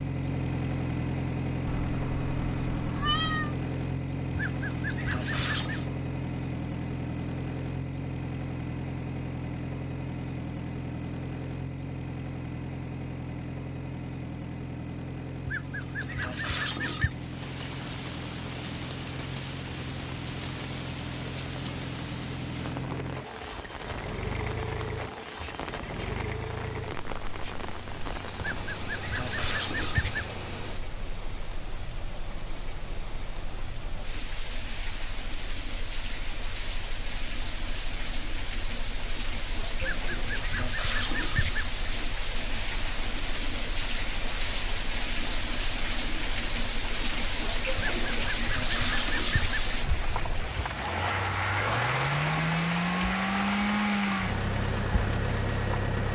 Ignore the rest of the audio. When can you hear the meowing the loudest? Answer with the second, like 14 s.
3 s.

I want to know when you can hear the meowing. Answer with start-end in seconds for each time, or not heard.
1.6-3.5.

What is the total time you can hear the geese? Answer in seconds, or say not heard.
9 s.